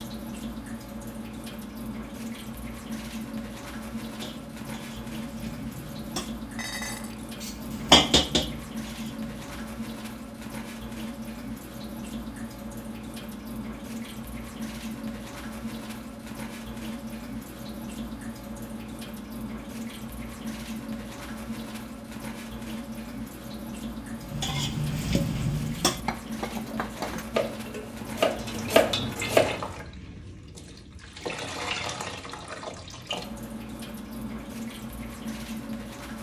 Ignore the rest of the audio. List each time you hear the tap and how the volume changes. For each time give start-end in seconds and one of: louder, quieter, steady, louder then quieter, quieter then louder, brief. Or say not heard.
0.0-36.1 steady.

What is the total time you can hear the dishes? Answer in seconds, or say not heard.
11 s.